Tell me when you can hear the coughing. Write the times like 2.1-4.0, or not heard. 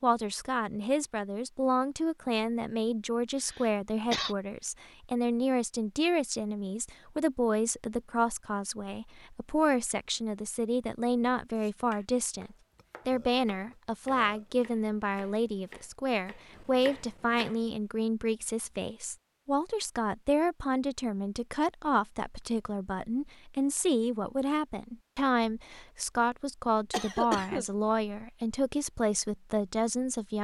3.4-4.3, 26.9-27.6.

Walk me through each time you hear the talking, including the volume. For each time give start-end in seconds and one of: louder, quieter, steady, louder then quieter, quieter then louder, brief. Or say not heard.
0.0-30.3 steady.